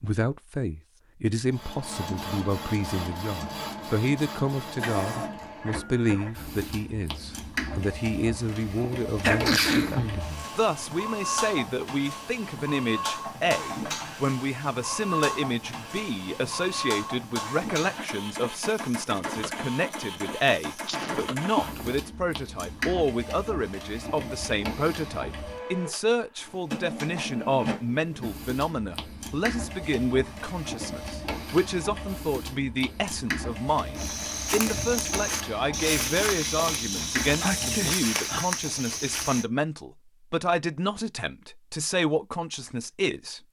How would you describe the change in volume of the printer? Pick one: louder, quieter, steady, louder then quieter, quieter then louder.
steady.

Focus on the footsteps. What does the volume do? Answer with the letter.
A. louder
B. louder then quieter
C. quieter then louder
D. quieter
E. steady
E.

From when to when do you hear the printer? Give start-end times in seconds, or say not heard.
1.5-37.9.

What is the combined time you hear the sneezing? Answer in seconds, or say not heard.
3 s.